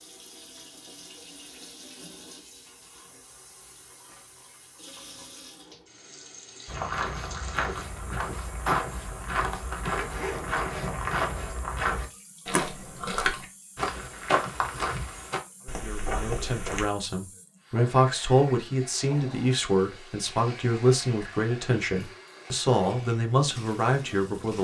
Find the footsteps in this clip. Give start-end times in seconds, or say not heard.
6.7-16.9.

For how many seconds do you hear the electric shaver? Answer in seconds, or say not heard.
not heard.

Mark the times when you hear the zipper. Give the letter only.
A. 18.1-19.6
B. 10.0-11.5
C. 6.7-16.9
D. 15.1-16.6
B.